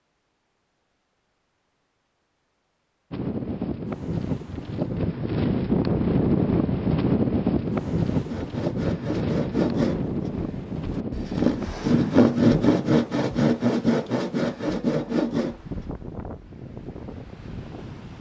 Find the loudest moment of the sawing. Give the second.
12 s.